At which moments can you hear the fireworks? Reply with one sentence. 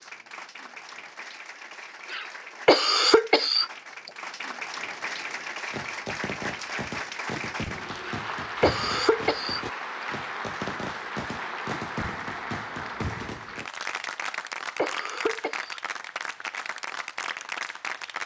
You can hear the fireworks from 4.8 to 13.7 s.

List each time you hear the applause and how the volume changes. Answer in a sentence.
The applause can be heard from 0.0 to 18.2 s, getting louder.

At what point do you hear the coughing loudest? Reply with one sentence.
The loudest moment of the coughing is at 3 seconds.